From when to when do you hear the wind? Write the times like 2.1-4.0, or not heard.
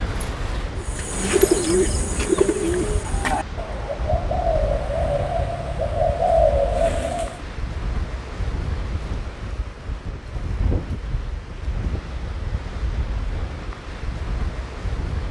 0.0-15.2.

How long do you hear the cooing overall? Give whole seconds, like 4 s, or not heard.
7 s.